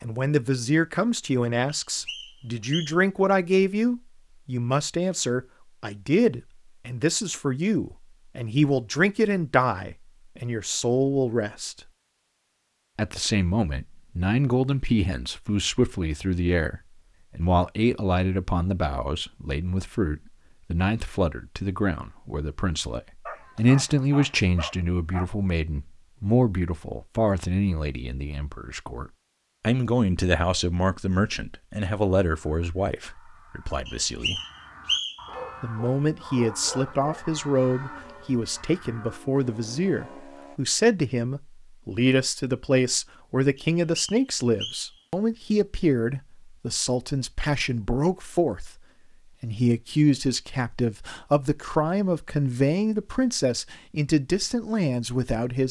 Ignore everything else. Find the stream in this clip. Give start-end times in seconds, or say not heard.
not heard.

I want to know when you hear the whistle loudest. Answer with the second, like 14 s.
35 s.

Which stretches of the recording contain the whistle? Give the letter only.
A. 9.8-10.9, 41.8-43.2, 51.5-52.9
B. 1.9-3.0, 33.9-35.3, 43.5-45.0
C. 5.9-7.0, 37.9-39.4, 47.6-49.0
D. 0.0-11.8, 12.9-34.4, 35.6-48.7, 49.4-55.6
B.